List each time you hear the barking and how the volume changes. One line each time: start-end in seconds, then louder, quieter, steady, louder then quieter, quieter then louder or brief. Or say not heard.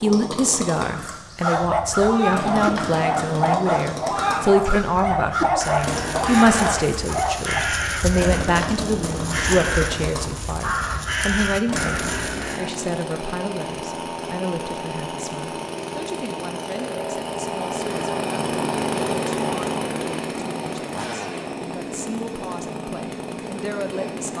1.4-7.7 steady.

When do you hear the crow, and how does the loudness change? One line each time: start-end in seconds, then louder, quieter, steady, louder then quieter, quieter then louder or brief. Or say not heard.
0.9-12.7 steady.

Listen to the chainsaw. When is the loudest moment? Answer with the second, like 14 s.
19 s.